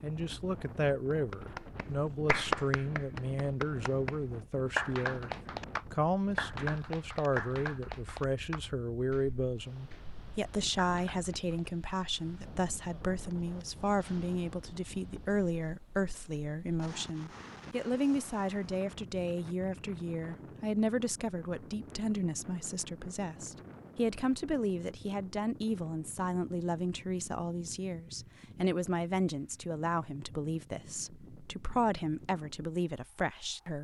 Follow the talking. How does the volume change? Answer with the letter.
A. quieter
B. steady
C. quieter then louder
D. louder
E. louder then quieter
B.